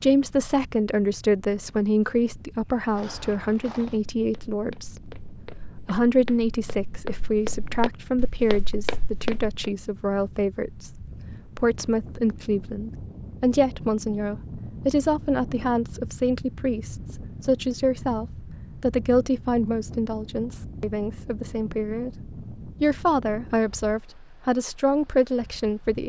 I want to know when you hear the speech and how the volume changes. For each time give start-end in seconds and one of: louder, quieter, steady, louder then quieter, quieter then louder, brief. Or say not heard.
0.0-26.0 steady.